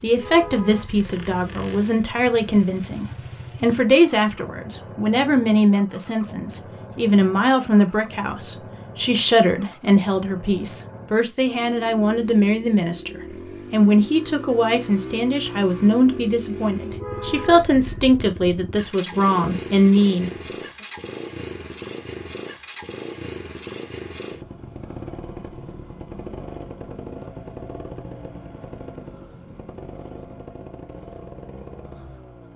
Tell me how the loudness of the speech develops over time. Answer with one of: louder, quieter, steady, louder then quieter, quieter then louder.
steady.